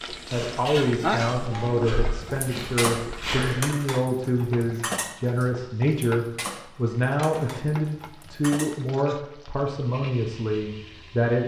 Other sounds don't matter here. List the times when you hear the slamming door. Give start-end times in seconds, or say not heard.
not heard.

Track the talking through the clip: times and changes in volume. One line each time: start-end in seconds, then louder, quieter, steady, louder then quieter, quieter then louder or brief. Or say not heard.
0.3-11.4 steady.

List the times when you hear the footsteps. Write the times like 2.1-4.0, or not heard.
0.0-3.7.